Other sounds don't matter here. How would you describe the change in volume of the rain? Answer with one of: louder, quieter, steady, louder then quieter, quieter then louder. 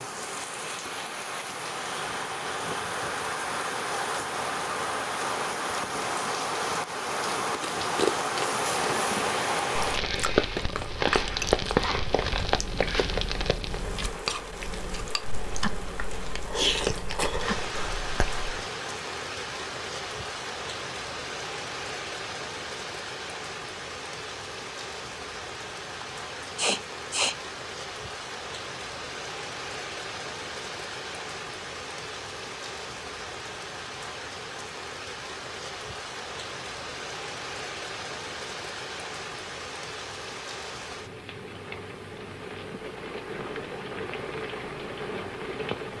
quieter.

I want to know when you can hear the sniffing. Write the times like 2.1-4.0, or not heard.
26.0-27.4.